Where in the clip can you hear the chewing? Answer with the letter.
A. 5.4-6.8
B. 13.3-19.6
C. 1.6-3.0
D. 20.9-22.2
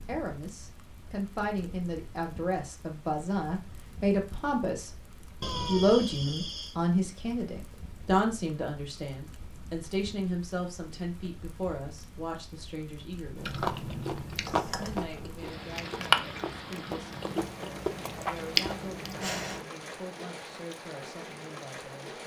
B.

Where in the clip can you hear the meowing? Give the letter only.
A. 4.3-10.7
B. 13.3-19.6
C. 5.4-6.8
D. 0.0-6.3
C.